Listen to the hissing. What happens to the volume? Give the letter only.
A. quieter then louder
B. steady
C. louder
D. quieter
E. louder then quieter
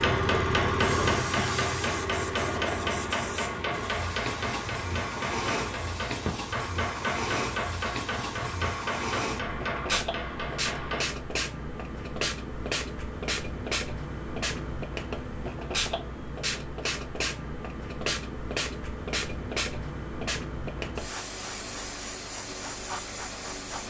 B.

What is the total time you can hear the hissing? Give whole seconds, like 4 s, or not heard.
24 s.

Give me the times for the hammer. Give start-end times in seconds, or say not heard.
0.0-11.1.